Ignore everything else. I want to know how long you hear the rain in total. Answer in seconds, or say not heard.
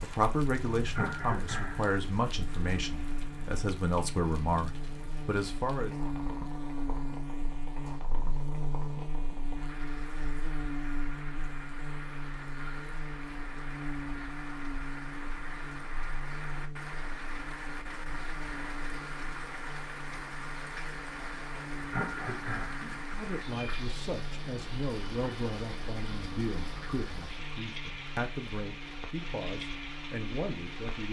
31 s.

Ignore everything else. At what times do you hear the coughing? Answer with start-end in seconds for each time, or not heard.
0.9-1.9, 21.9-22.9.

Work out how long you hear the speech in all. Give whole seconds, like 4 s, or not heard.
14 s.